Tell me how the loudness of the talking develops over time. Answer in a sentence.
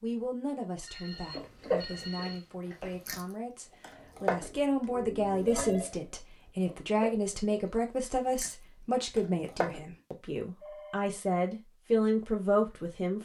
The loudness of the talking goes up.